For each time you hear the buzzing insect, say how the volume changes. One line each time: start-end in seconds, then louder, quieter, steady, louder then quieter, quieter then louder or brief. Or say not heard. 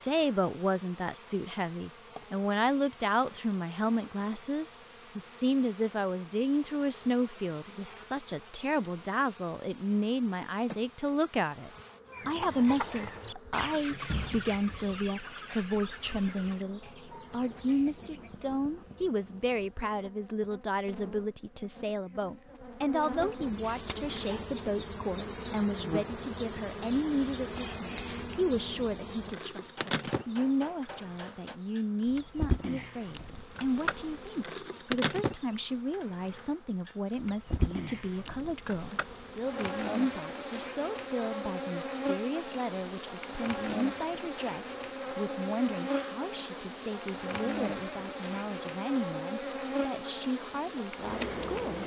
0.0-51.8 louder.